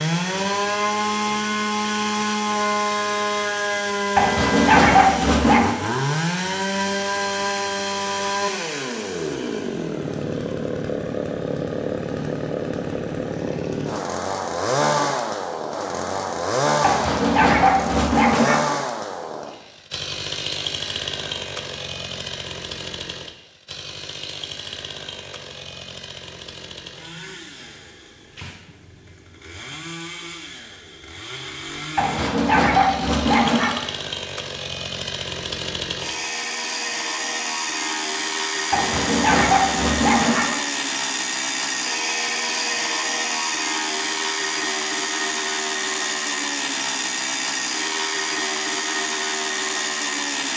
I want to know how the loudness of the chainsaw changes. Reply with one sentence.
The loudness of the chainsaw goes down, then up.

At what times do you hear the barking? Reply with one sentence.
You can hear the barking from 4.2 to 5.8 s, from 16.8 to 18.6 s, from 31.9 to 33.8 s and from 38.7 to 40.5 s.